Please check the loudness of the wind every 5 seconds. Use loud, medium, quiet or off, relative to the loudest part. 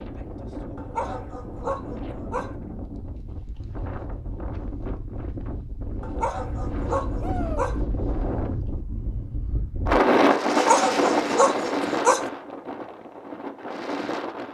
quiet, medium, loud.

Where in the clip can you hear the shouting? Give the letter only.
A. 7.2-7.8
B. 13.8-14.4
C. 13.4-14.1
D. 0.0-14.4
A.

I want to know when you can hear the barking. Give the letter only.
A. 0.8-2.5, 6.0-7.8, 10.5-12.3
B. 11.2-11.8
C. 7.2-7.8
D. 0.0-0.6
A.